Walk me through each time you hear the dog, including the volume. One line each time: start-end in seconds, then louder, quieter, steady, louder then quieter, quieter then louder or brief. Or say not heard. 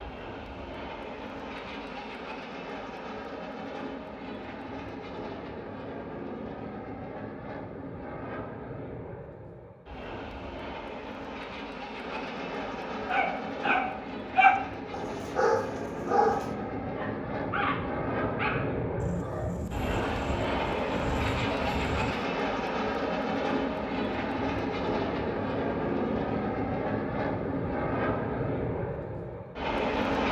13.1-22.3 quieter.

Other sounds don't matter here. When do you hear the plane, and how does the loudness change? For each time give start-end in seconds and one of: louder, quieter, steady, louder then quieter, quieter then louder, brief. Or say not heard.
0.0-30.2 louder.